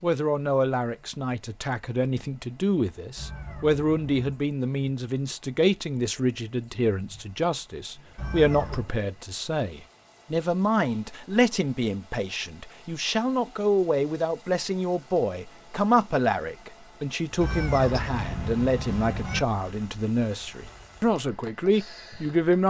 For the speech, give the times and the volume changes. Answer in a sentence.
You can hear the speech from 0.0 to 22.6 s, at a steady volume.